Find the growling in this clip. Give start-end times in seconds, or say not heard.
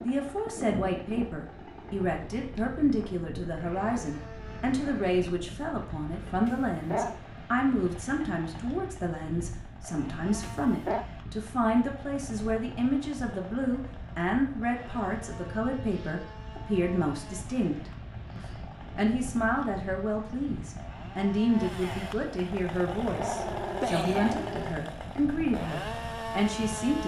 6.5-7.2, 10.4-11.1, 23.1-24.8.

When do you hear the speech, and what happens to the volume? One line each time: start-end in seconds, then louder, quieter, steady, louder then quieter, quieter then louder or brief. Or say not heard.
0.0-27.0 steady.